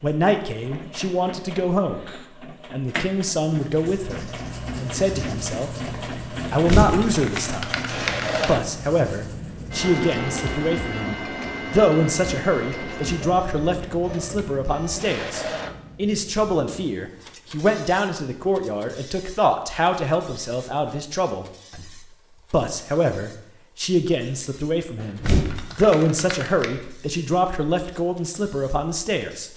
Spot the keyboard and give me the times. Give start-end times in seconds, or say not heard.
6.5-8.5, 25.0-26.7.